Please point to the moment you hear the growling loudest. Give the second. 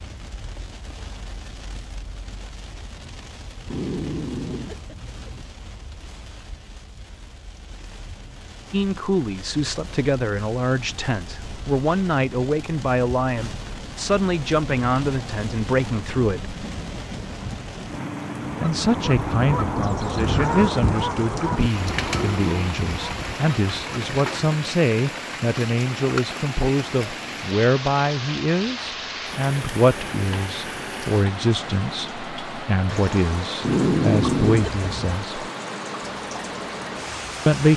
34 s.